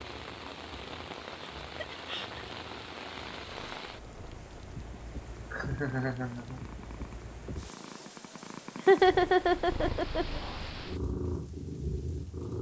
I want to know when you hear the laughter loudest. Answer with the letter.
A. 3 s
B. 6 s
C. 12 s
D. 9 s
D.